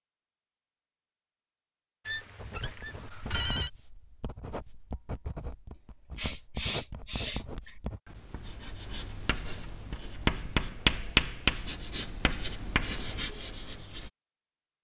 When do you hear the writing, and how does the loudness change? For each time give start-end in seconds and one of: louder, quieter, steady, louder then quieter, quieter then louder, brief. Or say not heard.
2.4-14.1 louder then quieter.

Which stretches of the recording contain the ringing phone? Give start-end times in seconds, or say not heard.
2.0-3.7.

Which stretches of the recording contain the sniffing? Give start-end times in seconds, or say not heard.
6.2-7.8.